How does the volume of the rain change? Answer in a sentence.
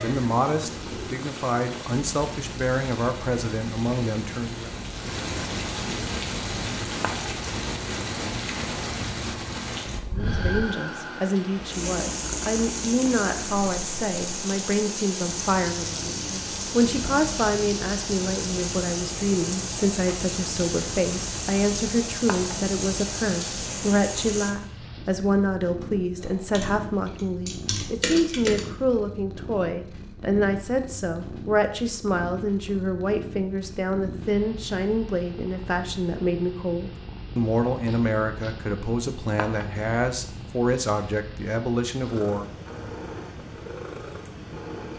The volume of the rain goes up.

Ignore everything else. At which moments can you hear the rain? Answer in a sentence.
The rain can be heard from 0.0 to 24.5 s.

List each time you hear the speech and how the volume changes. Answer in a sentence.
You can hear the speech from 0.0 to 4.7 s, at a steady volume; and from 10.1 to 42.5 s, at a steady volume.